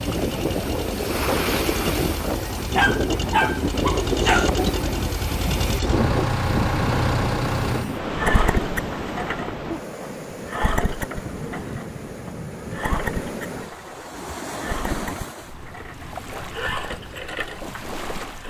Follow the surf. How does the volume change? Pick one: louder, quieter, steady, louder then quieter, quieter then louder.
quieter.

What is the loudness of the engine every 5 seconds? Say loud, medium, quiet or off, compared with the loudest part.
medium, loud, medium, medium.